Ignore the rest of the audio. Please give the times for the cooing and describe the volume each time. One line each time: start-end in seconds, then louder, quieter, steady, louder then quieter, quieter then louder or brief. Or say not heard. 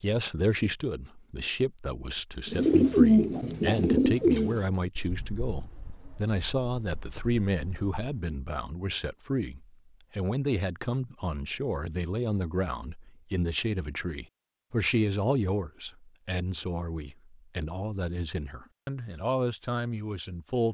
2.5-8.0 quieter.